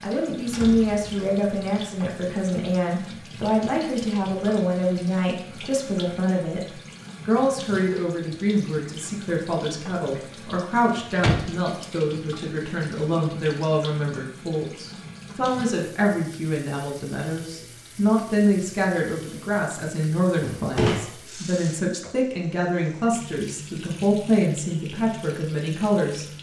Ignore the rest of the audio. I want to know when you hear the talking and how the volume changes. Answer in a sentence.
You can hear the talking from 0.0 to 26.3 s, at a steady volume.